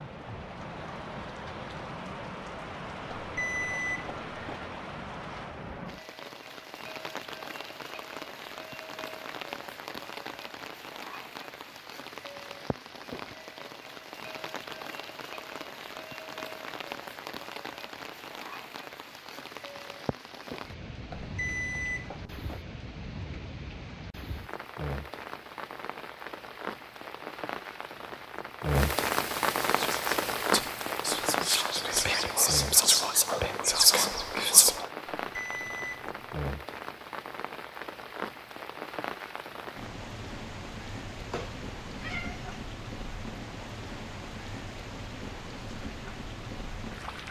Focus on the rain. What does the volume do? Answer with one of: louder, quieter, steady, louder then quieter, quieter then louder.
louder then quieter.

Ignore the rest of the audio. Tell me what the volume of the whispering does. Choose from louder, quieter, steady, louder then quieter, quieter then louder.
louder.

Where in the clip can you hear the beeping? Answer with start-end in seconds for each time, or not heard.
3.1-4.6, 21.1-22.6, 35.1-36.3.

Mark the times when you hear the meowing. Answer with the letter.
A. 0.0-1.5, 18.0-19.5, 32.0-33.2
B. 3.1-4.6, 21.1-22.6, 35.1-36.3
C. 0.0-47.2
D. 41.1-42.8
D.